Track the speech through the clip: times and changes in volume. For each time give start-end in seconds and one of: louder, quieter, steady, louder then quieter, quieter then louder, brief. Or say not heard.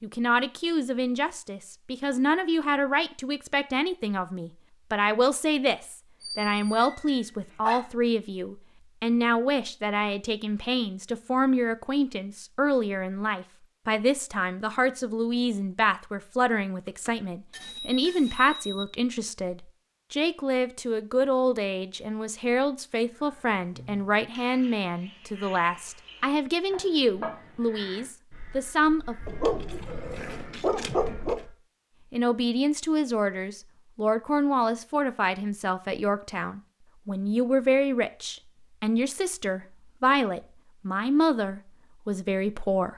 0.0-29.1 steady
32.1-42.9 steady.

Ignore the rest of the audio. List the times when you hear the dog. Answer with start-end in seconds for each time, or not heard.
6.2-7.8, 29.2-31.4.